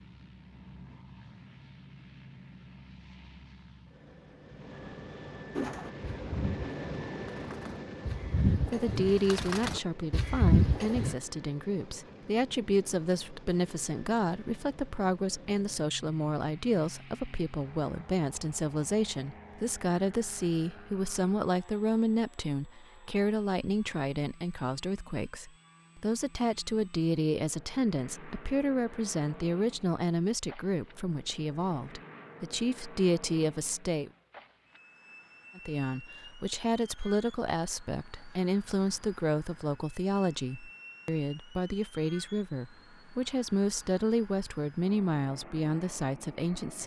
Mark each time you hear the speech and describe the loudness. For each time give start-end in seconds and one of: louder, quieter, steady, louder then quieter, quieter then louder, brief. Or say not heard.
8.4-34.1 steady
35.5-46.8 steady.